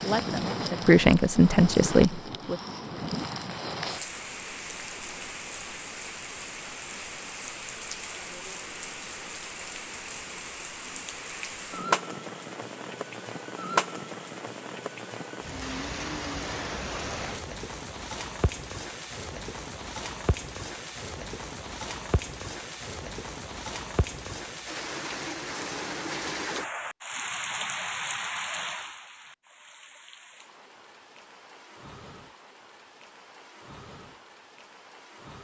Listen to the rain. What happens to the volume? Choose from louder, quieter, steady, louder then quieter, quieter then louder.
quieter.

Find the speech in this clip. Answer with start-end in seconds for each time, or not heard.
0.0-2.5.